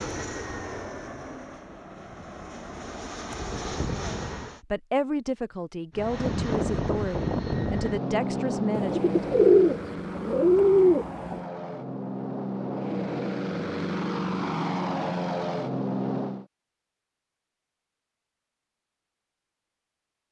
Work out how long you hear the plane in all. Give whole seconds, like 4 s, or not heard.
15 s.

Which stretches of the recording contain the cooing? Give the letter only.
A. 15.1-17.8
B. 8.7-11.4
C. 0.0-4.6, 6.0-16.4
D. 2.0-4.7
B.